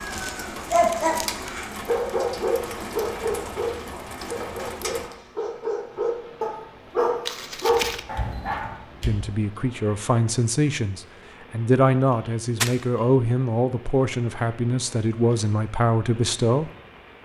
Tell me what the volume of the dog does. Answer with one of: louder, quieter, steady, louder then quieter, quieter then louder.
quieter then louder.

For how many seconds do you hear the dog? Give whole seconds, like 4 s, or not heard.
9 s.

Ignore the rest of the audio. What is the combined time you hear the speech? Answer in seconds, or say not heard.
8 s.